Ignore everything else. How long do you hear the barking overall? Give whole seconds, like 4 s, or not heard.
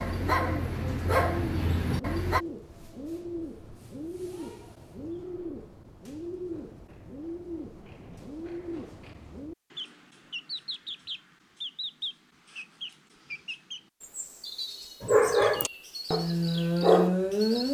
5 s.